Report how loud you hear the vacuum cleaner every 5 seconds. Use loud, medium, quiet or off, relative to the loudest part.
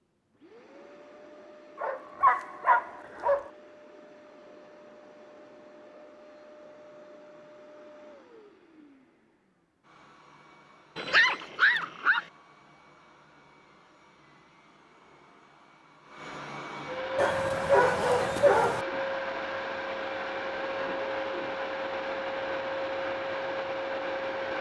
quiet, quiet, quiet, loud, loud.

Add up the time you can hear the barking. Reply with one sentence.
You can hear the barking for 5 seconds altogether.